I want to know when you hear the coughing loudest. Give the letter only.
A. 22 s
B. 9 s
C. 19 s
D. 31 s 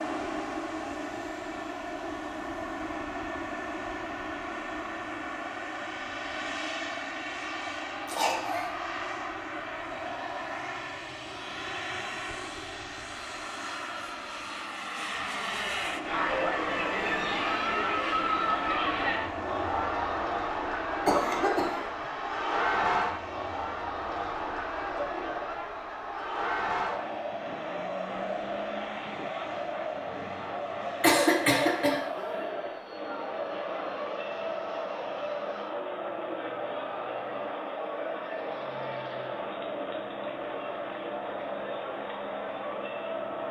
D.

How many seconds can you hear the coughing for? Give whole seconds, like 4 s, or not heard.
3 s.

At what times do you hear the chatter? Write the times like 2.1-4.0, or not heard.
16.0-43.4.